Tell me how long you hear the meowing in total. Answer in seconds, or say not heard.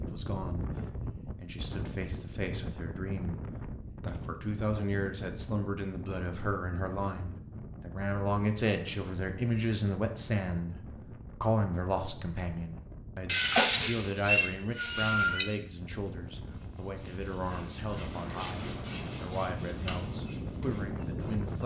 2 s.